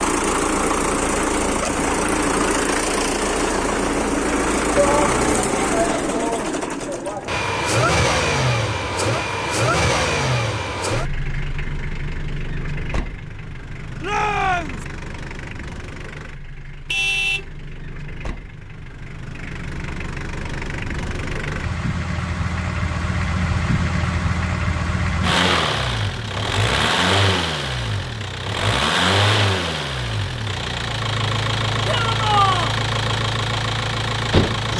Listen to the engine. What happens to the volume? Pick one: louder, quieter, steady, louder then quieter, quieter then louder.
quieter then louder.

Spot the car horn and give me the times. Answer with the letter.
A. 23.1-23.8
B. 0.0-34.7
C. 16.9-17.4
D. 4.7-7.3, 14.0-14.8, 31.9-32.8
C.